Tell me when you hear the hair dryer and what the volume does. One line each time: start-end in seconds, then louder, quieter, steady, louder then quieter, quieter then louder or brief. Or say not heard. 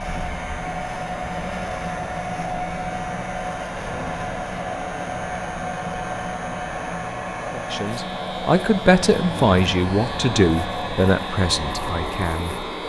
0.0-12.8 steady.